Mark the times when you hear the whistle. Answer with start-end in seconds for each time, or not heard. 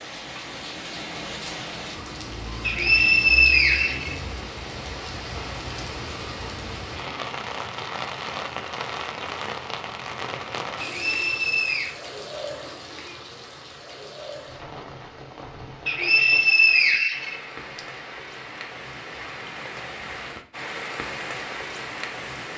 2.6-4.2, 10.8-11.9, 15.8-17.8.